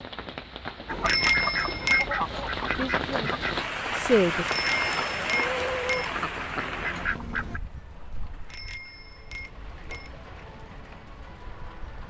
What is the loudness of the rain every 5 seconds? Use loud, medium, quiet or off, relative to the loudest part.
loud, loud, quiet.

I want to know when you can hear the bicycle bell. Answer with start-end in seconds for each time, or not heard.
1.1-2.1, 4.5-6.1, 8.5-10.2.